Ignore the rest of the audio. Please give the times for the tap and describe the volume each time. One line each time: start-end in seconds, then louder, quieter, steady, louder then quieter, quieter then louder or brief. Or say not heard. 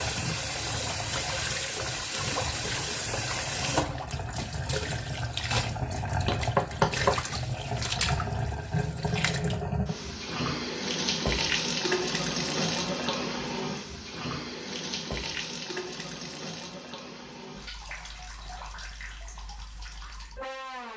0.0-20.9 quieter.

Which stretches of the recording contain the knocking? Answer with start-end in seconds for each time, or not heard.
6.2-7.2.